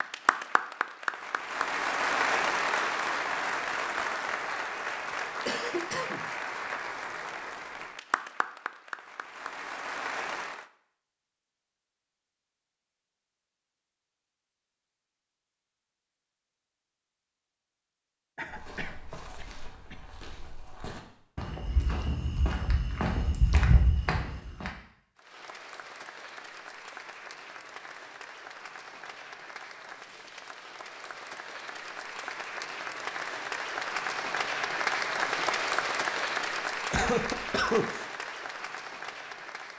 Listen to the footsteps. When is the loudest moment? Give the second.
24 s.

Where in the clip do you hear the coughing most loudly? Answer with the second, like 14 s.
38 s.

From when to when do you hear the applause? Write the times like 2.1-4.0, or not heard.
0.0-10.7, 25.1-39.7.